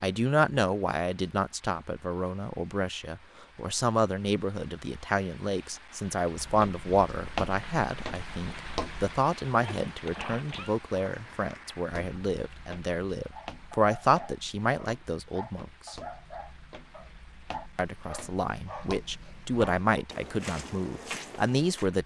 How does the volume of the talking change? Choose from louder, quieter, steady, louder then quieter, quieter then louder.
steady.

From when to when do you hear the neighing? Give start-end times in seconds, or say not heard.
9.6-10.8.